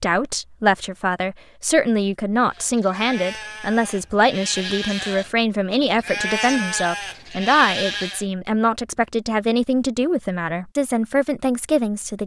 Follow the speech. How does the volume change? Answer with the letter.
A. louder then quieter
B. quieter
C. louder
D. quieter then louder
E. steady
E.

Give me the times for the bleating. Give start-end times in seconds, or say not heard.
2.5-8.2.